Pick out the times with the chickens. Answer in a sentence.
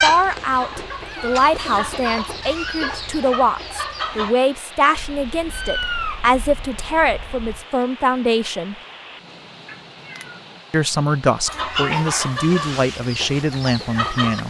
You can hear the chickens from 0.0 to 4.3 s and from 11.4 to 14.4 s.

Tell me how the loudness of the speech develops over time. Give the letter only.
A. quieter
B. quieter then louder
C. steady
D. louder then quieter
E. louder
C.